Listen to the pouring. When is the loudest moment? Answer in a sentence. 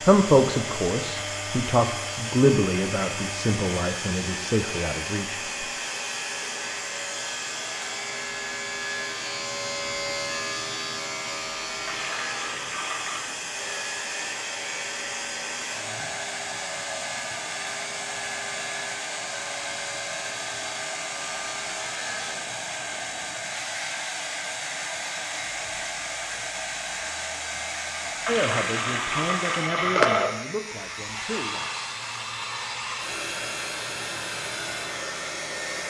The loudest moment of the pouring is at 30 seconds.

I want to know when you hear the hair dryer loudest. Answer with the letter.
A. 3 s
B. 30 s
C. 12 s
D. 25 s
B.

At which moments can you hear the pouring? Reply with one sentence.
You can hear the pouring from 11.8 to 13.2 s and from 28.2 to 30.3 s.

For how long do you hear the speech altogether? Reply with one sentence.
You can hear the speech for 9 seconds altogether.